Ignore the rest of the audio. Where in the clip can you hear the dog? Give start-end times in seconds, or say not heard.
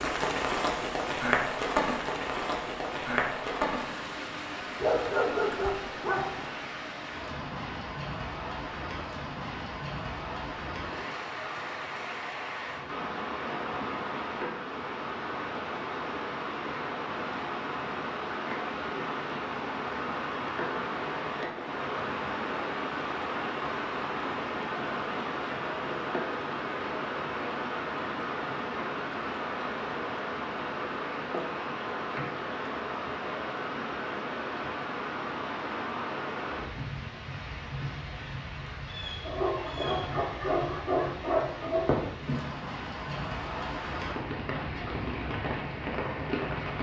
4.8-6.4, 39.2-42.0.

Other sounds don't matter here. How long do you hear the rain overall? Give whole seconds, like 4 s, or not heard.
47 s.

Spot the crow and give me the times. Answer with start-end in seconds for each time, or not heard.
not heard.